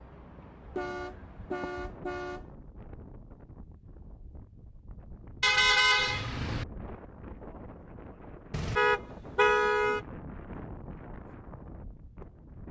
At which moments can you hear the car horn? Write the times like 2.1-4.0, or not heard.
0.8-2.5, 5.4-6.7, 8.5-10.0.